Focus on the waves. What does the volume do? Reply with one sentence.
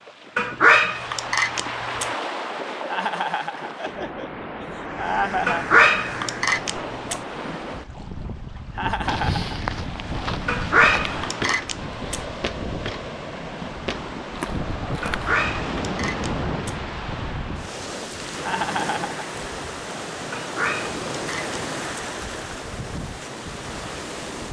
The volume of the waves stays about the same.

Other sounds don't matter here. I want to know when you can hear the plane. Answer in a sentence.
You can't hear the plane here.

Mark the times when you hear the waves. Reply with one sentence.
The waves can be heard from 0.0 to 24.4 s.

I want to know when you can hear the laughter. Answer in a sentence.
The laughter can be heard from 2.9 to 5.7 s, from 8.8 to 9.6 s and from 18.4 to 19.2 s.